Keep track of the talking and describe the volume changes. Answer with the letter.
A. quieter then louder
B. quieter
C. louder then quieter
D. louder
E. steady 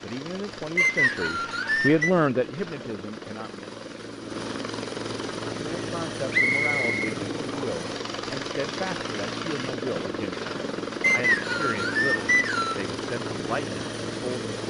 B.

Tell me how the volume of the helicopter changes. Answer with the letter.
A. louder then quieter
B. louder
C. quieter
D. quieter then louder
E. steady
B.